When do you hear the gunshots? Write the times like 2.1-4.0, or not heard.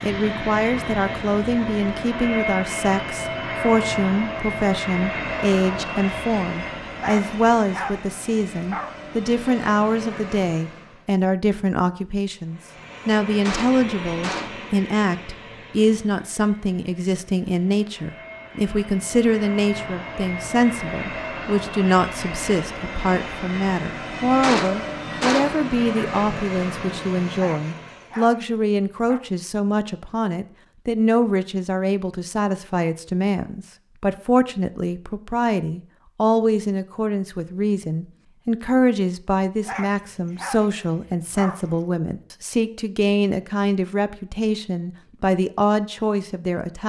13.4-14.6, 24.4-25.6.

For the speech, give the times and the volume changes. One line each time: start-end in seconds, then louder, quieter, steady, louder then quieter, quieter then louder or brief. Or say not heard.
0.0-46.8 steady.